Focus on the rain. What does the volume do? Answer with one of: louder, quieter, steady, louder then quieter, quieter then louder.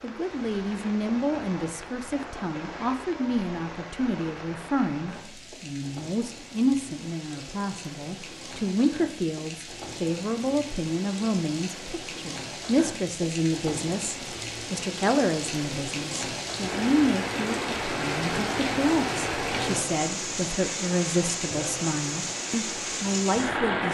louder.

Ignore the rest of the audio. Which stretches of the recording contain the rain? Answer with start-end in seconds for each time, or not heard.
0.0-23.8.